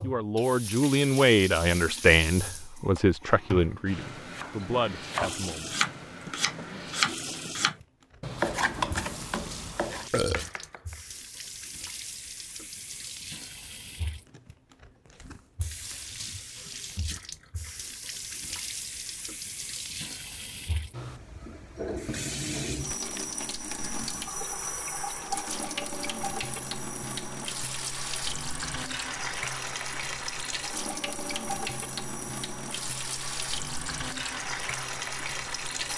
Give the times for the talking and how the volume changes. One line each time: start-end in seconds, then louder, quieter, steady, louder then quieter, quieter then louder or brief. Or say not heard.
0.0-5.8 quieter.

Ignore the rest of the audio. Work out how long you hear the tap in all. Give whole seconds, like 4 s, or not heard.
36 s.